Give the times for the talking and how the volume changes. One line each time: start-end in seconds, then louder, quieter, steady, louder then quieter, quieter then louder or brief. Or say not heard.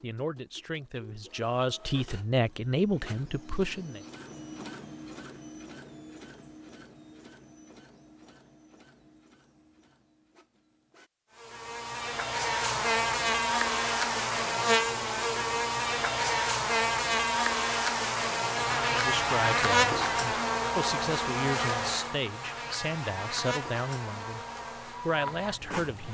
0.0-4.0 louder then quieter
18.9-26.0 steady.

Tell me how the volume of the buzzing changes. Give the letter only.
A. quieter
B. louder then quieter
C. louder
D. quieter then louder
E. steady
A.